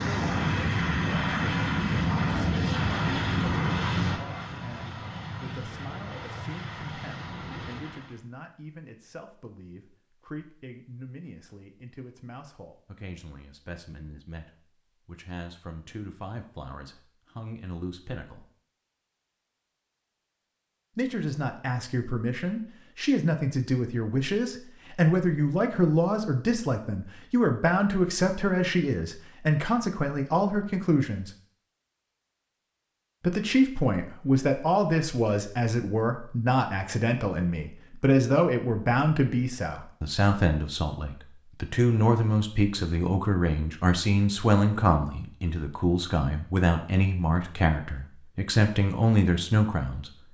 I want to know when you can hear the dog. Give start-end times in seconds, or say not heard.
not heard.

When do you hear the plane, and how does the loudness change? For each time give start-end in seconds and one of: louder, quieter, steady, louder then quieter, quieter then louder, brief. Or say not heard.
0.0-8.2 quieter.